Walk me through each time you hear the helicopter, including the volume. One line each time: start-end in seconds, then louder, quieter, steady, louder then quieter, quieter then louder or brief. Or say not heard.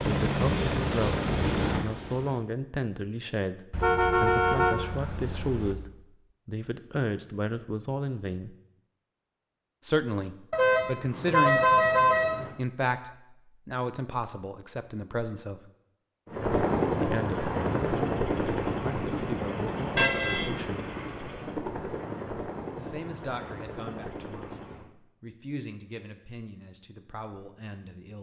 0.0-2.5 brief
16.2-24.9 quieter.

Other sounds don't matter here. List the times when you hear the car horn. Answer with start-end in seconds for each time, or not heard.
3.7-5.8, 10.5-12.6, 19.9-20.6.